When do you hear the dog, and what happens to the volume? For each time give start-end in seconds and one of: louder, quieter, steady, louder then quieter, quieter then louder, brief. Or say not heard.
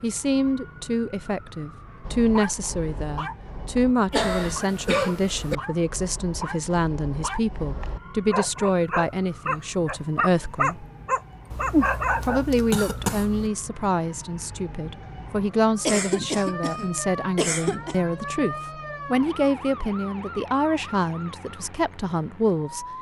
2.0-12.4 louder.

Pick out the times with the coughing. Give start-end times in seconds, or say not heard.
4.1-5.5, 11.5-13.5, 15.8-18.0.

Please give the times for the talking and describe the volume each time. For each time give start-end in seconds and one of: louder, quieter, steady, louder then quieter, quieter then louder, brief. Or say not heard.
0.0-10.8 steady
12.2-22.9 steady.